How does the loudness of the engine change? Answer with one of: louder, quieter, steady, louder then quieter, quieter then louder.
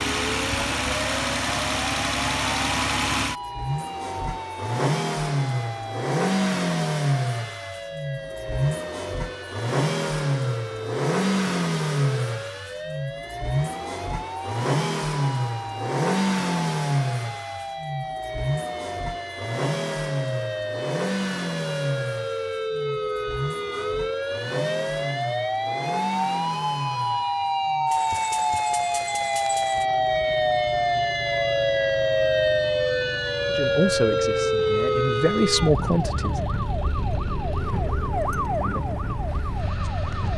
quieter.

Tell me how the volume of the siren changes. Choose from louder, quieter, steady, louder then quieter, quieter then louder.
louder.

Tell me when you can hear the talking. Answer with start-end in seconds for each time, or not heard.
33.5-36.4.